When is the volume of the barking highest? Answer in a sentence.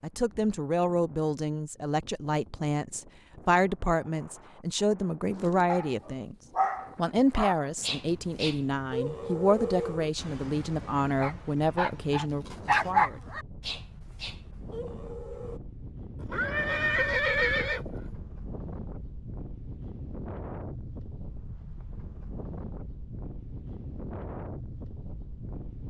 The volume of the barking peaks at 13 seconds.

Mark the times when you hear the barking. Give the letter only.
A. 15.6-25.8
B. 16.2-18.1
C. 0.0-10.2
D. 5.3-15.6
D.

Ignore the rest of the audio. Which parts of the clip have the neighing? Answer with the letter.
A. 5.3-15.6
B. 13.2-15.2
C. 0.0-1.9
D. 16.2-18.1
D.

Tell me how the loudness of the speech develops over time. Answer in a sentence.
The loudness of the speech stays about the same.